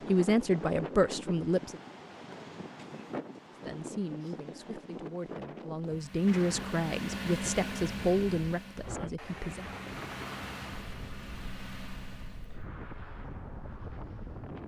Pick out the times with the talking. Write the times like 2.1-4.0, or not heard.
0.1-1.8, 3.6-9.7.